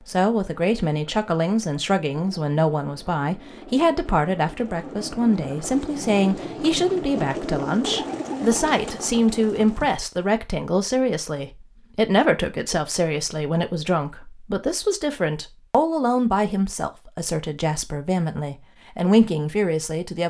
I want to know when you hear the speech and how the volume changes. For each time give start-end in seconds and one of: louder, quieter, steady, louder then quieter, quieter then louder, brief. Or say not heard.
0.1-20.2 steady.